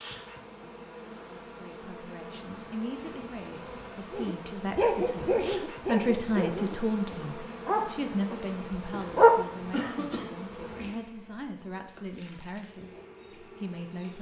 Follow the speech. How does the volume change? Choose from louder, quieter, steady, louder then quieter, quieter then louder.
louder then quieter.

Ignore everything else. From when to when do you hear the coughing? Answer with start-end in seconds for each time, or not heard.
8.9-10.3.